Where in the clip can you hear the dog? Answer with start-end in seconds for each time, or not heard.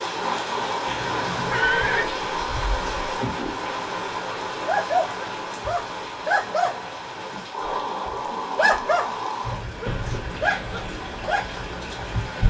4.7-11.6.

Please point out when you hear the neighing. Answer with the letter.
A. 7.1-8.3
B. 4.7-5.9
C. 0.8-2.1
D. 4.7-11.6
C.